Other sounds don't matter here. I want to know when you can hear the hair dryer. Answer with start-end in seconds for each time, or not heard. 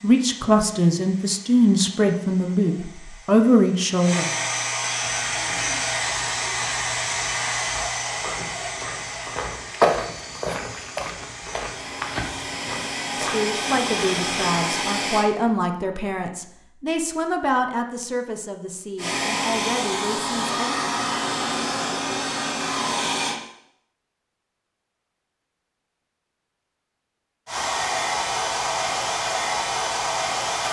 0.0-15.3, 18.9-23.4, 27.4-30.6.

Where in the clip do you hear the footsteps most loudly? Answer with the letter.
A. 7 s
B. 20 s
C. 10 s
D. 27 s
C.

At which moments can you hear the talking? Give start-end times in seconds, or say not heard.
0.0-4.3, 13.2-20.8.